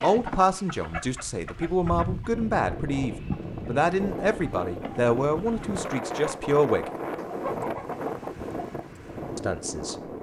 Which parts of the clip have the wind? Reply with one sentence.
The wind can be heard from 2.2 to 10.1 s.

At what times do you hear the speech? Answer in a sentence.
You can hear the speech from 0.0 to 6.9 s and from 9.3 to 9.9 s.